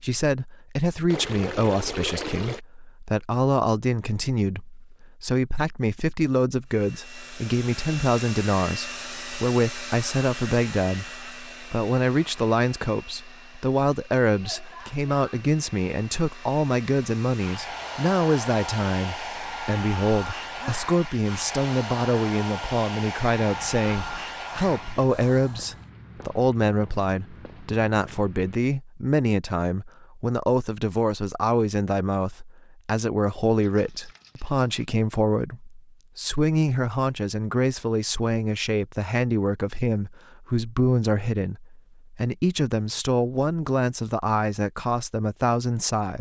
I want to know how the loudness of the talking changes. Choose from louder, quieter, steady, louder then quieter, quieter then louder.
steady.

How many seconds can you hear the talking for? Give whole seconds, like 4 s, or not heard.
46 s.